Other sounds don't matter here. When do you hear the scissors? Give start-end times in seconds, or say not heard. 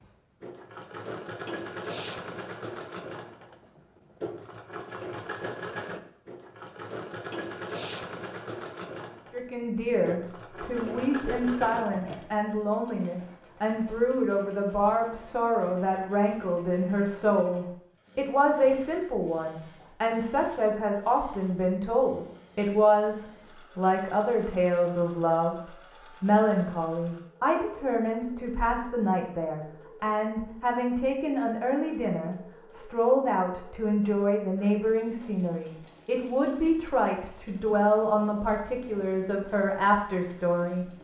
not heard.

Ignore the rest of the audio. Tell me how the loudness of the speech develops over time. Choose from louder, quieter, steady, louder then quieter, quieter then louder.
steady.